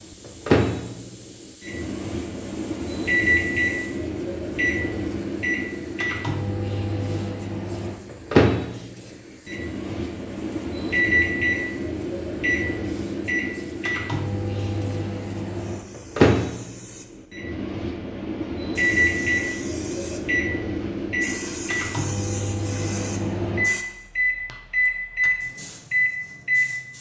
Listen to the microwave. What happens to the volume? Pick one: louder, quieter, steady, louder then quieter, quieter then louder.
steady.